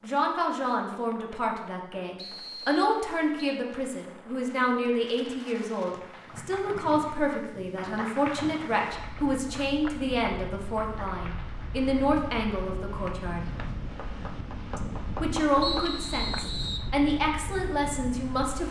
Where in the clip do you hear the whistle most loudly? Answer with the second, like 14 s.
16 s.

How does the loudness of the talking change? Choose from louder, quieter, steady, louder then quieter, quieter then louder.
steady.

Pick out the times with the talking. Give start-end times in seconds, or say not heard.
0.0-13.5, 14.8-18.6.